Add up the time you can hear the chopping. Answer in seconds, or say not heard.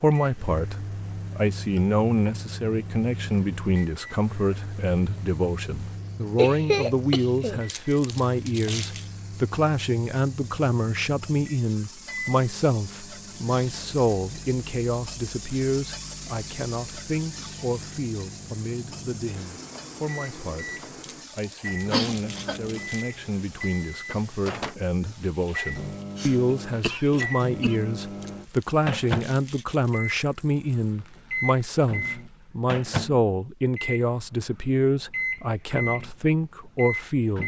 not heard.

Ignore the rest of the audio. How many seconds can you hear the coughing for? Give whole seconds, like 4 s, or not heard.
4 s.